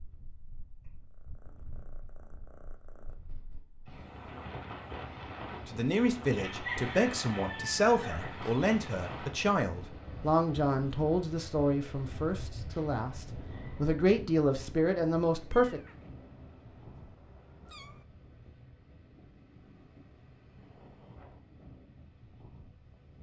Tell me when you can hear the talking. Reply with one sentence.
The talking can be heard from 5.7 to 15.8 s.